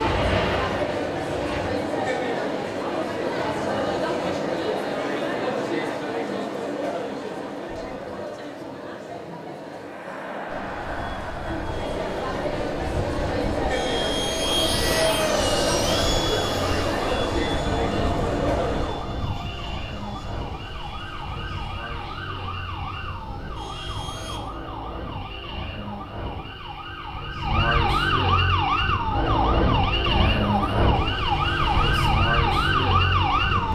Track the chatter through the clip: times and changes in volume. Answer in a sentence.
The chatter can be heard from 0.0 to 19.1 s, getting quieter then louder.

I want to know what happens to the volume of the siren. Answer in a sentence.
The volume of the siren goes up.